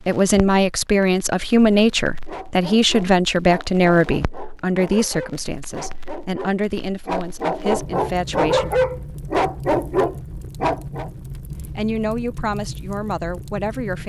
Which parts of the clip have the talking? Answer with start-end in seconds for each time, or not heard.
0.1-8.7, 11.6-14.0.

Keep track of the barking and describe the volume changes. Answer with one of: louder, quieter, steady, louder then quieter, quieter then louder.
louder.